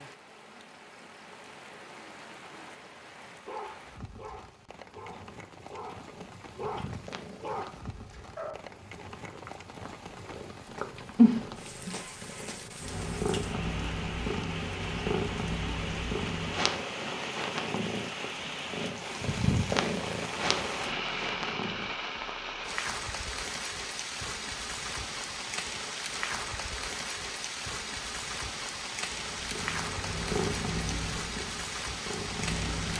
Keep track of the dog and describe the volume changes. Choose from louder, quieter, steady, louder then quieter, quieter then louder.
louder.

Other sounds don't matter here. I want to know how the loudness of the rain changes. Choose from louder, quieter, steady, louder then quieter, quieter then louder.
louder.